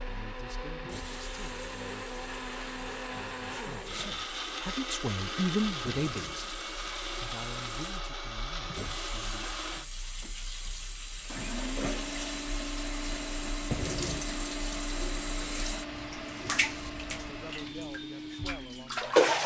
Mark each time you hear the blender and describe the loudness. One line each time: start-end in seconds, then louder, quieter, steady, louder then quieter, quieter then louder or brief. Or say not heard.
0.0-19.1 steady.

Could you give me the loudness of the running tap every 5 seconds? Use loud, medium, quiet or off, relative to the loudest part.
quiet, quiet, medium, loud.